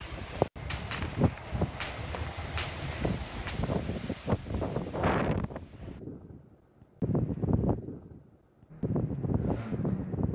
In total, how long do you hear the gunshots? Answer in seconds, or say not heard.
3 s.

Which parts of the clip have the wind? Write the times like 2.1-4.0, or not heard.
0.0-10.3.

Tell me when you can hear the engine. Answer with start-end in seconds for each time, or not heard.
8.7-10.3.